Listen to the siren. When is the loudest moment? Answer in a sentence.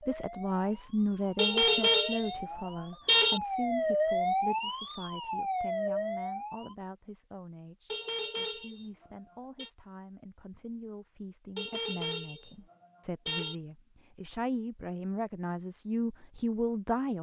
The loudest moment of the siren is at 4 seconds.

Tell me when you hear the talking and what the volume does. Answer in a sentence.
You can hear the talking from 0.1 to 17.1 s, getting quieter then louder.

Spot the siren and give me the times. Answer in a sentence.
The siren can be heard from 0.0 to 6.8 s.